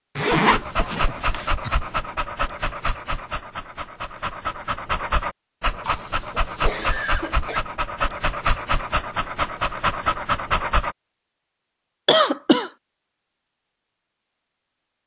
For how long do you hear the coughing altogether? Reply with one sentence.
You can hear the coughing for 4 seconds altogether.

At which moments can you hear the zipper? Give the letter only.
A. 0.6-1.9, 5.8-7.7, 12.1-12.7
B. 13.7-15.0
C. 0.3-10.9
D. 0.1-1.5
D.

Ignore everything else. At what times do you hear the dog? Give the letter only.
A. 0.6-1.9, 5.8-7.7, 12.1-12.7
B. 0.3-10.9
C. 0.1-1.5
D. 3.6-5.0
B.